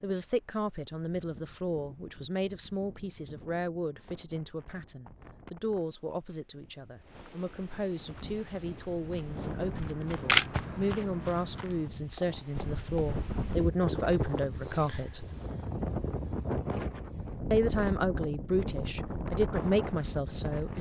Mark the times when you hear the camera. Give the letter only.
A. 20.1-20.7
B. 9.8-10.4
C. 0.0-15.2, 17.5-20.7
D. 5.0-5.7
B.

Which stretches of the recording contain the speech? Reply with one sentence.
You can hear the speech from 0.0 to 15.2 s and from 17.5 to 20.7 s.